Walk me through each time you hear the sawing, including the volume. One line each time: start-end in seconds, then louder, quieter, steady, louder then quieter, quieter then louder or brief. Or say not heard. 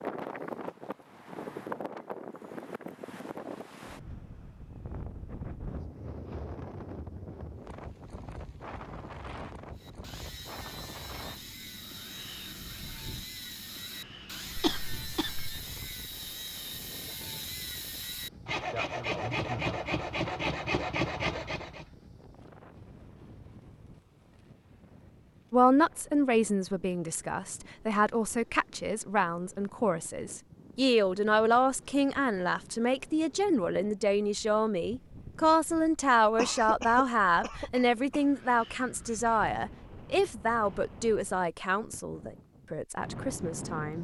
9.8-21.9 louder.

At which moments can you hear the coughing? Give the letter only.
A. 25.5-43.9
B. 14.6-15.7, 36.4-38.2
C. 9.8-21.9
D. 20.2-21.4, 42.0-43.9
B.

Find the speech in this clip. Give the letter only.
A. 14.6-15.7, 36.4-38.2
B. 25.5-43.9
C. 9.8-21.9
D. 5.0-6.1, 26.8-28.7
B.